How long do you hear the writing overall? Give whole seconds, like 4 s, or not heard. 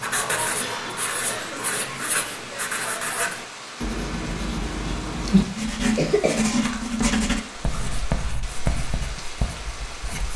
10 s.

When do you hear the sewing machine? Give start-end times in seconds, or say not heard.
not heard.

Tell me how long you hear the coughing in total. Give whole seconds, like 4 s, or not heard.
2 s.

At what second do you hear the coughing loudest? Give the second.
6 s.